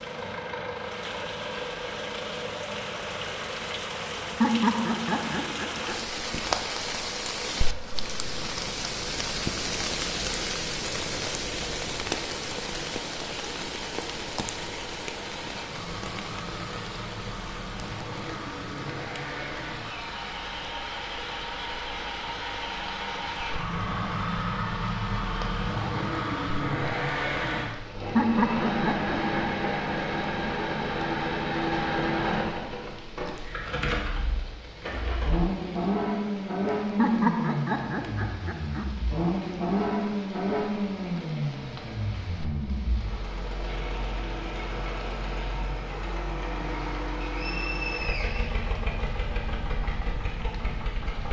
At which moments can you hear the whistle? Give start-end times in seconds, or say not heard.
47.2-48.6.